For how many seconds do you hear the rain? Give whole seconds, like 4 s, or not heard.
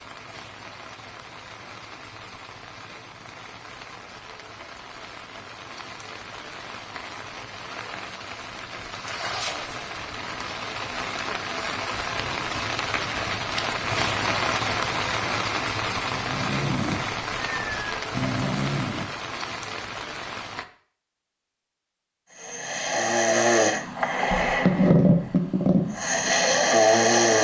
21 s.